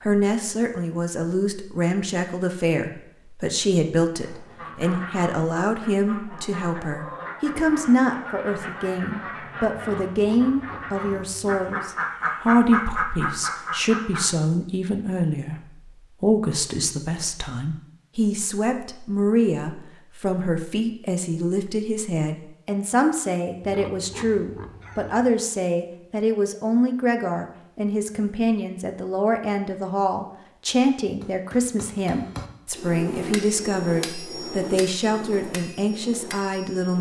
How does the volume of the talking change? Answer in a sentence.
The volume of the talking stays about the same.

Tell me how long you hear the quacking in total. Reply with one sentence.
The quacking can be heard for 10 seconds in total.